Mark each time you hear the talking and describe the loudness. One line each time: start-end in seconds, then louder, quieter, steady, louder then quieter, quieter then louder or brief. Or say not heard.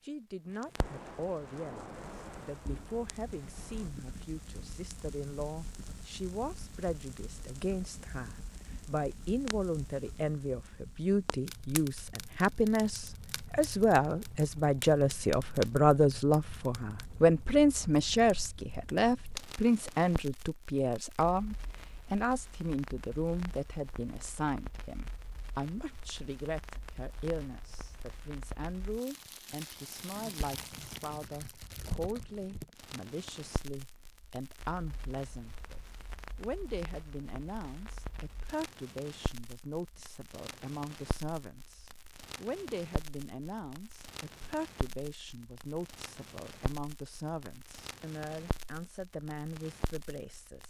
0.0-50.6 louder then quieter.